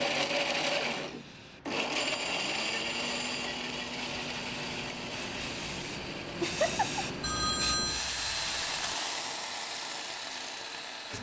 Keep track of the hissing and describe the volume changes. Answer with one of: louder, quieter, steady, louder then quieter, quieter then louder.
louder.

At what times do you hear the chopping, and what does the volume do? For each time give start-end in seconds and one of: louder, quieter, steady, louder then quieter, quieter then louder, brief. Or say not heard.
not heard.